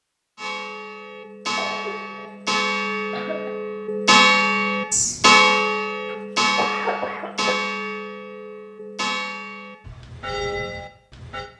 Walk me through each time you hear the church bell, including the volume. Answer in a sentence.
You can hear the church bell from 0.3 to 11.5 s, getting louder then quieter.